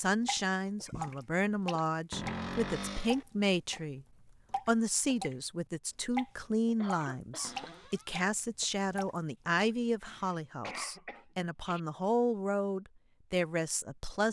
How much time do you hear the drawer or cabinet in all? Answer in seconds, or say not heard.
2 s.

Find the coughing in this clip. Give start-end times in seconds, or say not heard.
0.3-1.1, 6.8-7.5, 10.0-11.8.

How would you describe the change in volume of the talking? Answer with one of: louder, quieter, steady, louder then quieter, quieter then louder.
steady.